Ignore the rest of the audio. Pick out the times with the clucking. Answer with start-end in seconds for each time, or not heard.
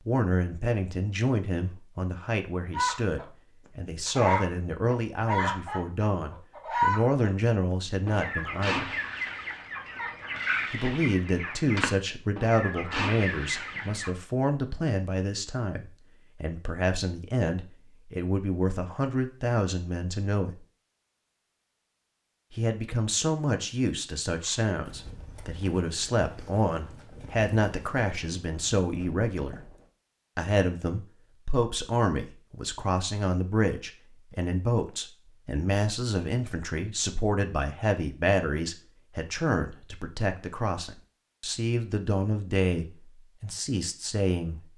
2.7-3.2, 4.0-7.3, 8.1-14.1.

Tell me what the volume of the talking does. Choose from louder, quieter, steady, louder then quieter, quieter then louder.
steady.